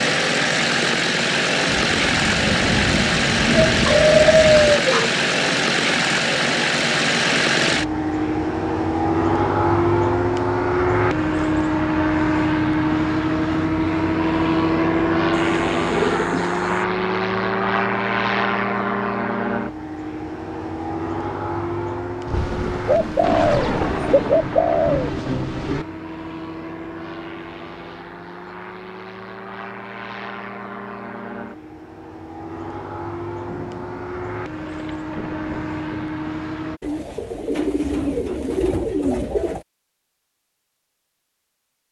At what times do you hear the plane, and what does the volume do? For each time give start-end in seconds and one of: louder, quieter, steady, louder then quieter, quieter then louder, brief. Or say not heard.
0.0-36.8 quieter.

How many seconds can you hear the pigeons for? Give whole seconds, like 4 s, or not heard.
8 s.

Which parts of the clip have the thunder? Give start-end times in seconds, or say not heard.
1.9-4.8, 22.2-25.9, 33.5-36.1.